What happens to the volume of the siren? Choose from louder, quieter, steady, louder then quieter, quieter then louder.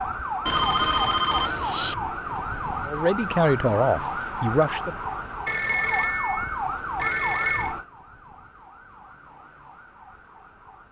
quieter.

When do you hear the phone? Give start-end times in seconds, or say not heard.
0.5-1.9, 5.5-7.8.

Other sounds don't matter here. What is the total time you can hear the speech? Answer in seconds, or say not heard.
2 s.